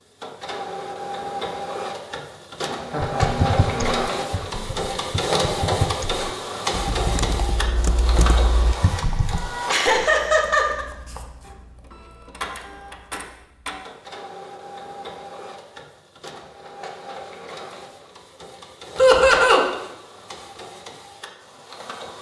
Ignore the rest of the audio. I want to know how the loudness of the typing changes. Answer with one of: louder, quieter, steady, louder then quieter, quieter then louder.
quieter then louder.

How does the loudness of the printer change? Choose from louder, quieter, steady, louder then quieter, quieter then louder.
quieter.